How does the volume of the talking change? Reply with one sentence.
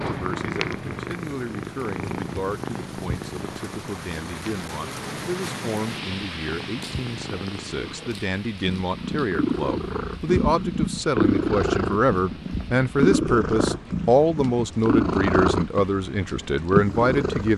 The loudness of the talking goes up.